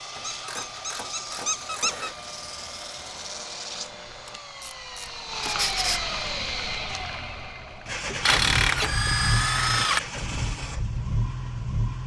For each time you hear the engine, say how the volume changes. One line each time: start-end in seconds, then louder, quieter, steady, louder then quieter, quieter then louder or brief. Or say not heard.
0.0-12.0 louder.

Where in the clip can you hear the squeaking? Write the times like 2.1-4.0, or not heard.
0.1-2.1, 5.4-6.0, 8.1-9.1.